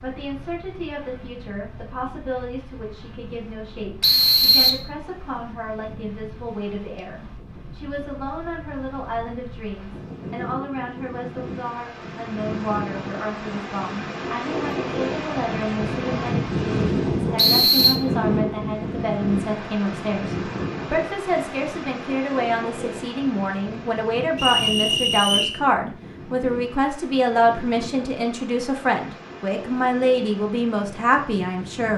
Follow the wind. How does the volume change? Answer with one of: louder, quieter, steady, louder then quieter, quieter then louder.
louder then quieter.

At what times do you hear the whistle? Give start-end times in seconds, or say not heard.
4.0-4.8, 17.4-18.0, 24.4-25.6.